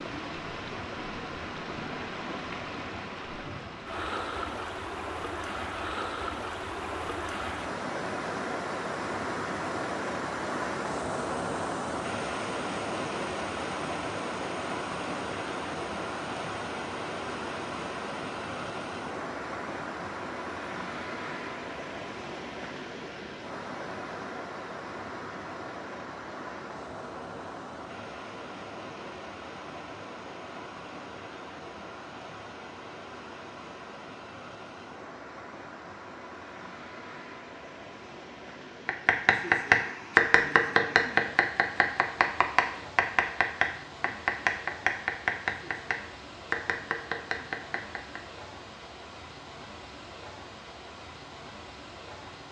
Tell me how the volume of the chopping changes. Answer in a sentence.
The volume of the chopping goes down.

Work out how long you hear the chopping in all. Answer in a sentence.
The chopping can be heard for 9 seconds in total.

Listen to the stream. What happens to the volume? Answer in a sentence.
The volume of the stream goes down.